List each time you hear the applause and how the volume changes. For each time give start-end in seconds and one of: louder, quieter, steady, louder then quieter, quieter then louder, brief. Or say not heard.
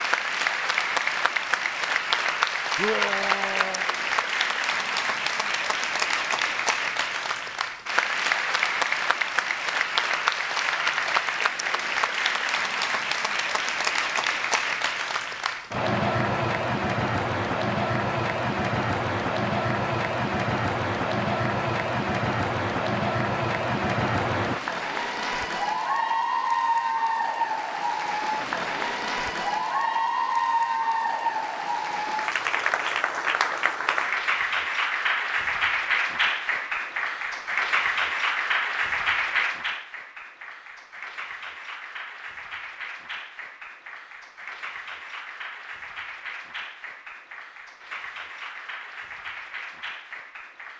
0.0-50.7 quieter.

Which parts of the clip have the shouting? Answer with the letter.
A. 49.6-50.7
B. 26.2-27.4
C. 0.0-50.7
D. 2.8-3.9
D.